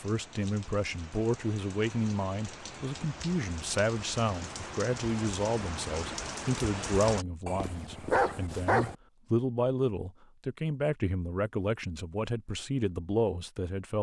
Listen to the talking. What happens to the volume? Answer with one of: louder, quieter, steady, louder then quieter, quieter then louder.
steady.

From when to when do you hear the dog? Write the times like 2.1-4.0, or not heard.
7.5-8.9.